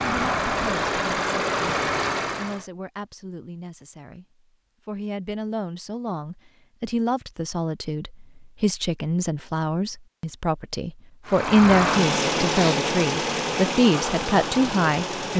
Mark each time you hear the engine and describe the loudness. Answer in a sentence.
The engine can be heard briefly from 0.0 to 2.6 s; and from 11.2 to 15.3 s, getting quieter.